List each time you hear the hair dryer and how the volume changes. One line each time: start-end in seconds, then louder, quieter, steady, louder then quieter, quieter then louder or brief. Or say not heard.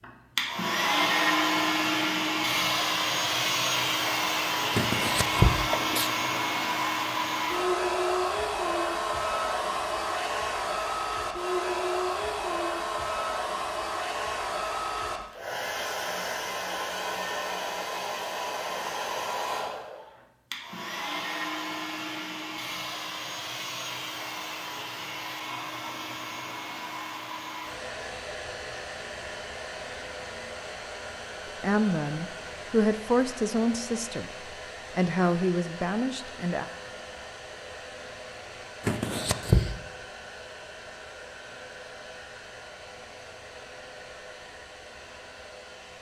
0.0-45.9 quieter.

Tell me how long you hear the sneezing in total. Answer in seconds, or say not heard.
2 s.